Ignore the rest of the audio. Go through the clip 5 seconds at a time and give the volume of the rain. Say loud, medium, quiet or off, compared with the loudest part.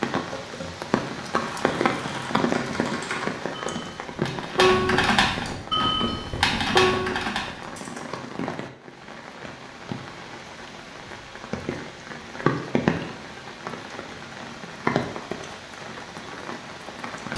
loud, medium, loud, medium.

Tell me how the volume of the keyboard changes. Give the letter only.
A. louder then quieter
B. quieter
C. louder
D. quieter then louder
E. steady
C.